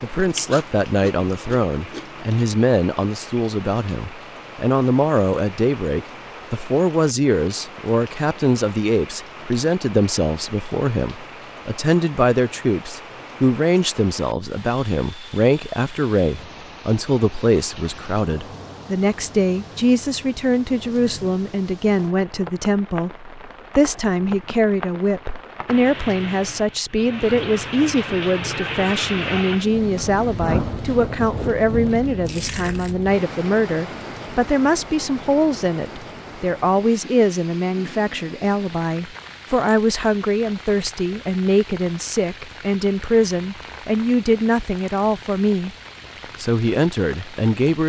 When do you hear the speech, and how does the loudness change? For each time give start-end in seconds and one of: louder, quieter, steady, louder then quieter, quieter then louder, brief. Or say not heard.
0.0-45.8 steady
46.4-47.8 brief.